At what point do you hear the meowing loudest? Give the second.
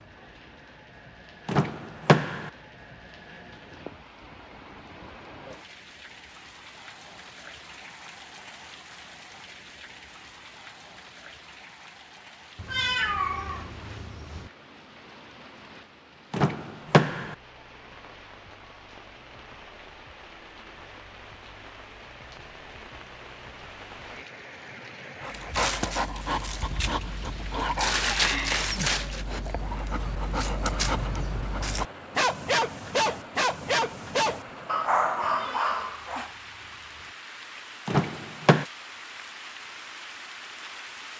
13 s.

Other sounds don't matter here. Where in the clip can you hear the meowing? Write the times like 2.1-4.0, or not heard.
12.6-14.5, 35.2-37.1.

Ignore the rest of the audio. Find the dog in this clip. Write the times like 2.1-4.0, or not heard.
25.2-36.4.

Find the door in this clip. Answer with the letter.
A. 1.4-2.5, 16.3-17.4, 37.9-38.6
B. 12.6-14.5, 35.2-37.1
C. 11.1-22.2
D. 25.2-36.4
A.